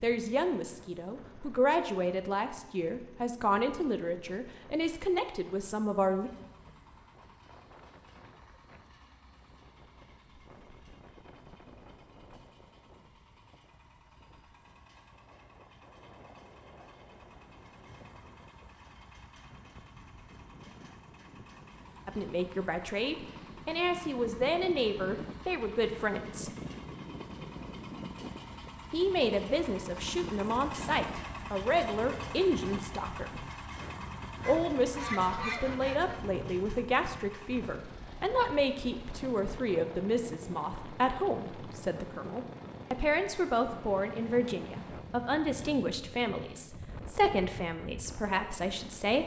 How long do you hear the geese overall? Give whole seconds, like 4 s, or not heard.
2 s.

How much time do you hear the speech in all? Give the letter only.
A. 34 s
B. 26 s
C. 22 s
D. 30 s
D.